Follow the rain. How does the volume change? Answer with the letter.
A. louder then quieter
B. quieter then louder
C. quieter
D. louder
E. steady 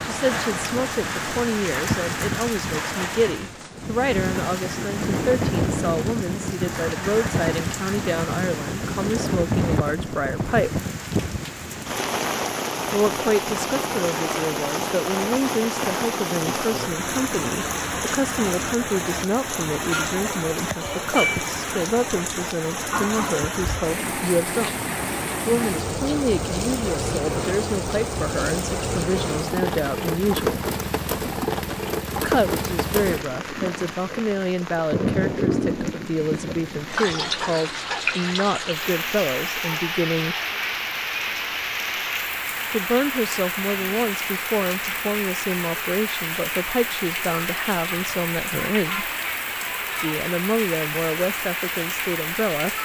E.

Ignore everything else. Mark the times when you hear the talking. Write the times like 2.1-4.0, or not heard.
0.0-10.8, 12.9-24.8, 25.4-30.6, 32.1-40.4, 42.7-49.1, 50.0-52.7.